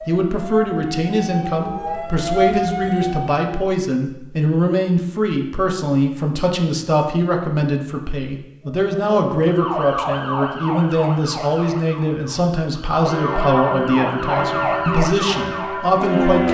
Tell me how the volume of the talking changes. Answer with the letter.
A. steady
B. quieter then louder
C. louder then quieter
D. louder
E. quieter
A.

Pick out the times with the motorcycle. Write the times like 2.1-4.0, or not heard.
not heard.